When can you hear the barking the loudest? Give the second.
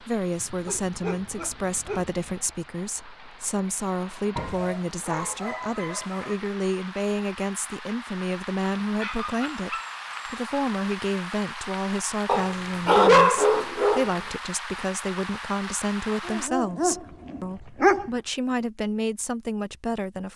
13 s.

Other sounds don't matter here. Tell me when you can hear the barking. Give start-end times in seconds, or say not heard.
0.3-2.4, 4.3-6.3, 8.9-10.3, 12.2-14.1, 16.2-18.1.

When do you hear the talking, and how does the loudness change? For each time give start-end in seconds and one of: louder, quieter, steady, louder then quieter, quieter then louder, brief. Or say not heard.
0.0-20.3 steady.